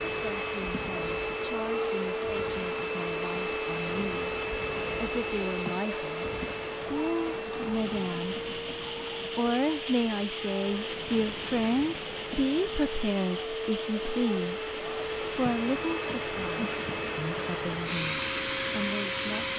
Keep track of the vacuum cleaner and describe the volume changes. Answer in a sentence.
The volume of the vacuum cleaner goes down, then up.